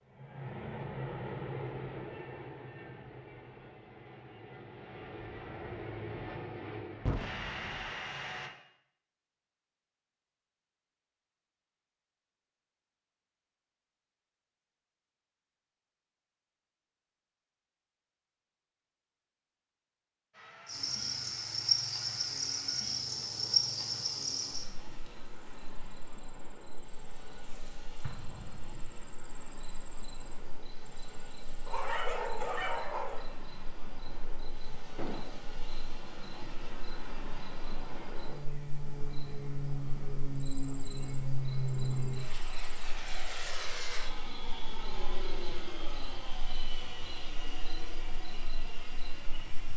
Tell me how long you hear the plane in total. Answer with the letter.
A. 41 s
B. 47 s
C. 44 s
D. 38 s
D.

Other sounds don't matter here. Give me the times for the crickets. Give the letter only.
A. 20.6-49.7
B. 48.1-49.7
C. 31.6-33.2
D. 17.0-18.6
A.